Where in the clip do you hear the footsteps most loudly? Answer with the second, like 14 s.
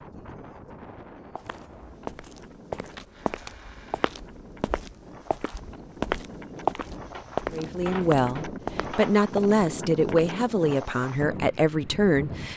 7 s.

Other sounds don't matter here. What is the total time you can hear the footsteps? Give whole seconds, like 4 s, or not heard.
9 s.